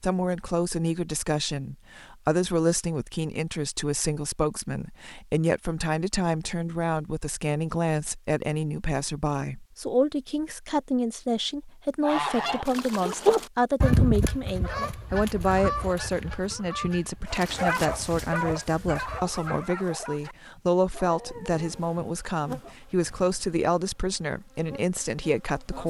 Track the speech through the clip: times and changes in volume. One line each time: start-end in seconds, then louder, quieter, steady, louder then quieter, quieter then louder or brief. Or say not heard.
0.0-25.8 steady.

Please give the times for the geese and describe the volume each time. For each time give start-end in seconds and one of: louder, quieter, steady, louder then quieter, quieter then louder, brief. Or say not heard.
12.0-19.4 quieter.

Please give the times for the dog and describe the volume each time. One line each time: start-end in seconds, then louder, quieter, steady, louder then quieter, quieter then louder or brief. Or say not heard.
17.2-22.8 quieter.